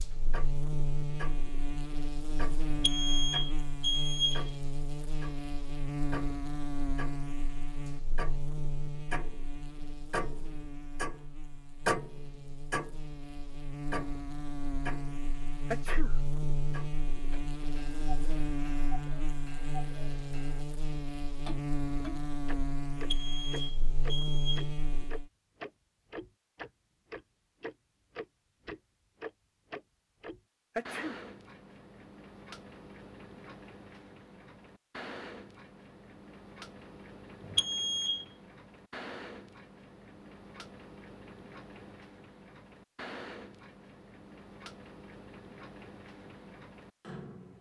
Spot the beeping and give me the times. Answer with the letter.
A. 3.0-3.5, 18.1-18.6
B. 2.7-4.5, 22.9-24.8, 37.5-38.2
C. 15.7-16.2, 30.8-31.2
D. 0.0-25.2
B.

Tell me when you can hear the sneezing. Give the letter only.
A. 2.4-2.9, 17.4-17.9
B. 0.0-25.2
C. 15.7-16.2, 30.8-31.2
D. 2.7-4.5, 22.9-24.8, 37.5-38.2
C.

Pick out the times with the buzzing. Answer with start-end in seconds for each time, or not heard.
0.0-25.2.